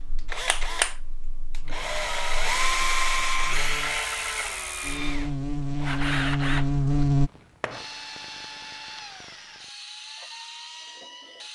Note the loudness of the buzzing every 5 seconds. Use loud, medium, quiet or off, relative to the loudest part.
quiet, loud, off.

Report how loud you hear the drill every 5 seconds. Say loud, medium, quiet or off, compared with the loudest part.
loud, medium, quiet.